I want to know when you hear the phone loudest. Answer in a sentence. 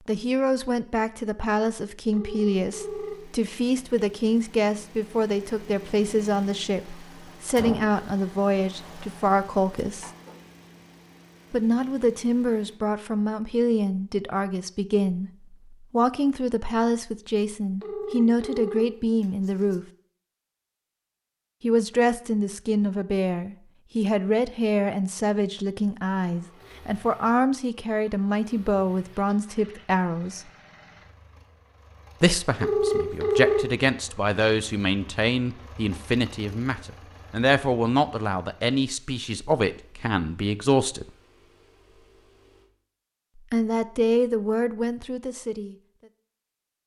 The loudest moment of the phone is at 33 seconds.